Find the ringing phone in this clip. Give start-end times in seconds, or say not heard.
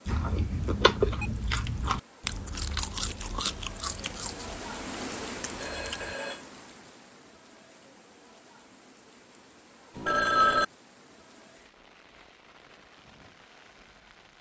1.2-1.9, 5.6-6.5, 9.9-10.7.